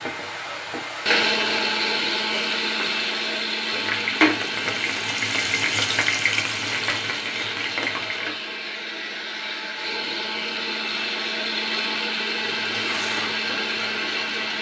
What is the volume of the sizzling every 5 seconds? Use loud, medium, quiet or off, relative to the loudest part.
loud, loud, medium.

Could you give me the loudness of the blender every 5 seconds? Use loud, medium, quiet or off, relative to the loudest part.
loud, medium, loud.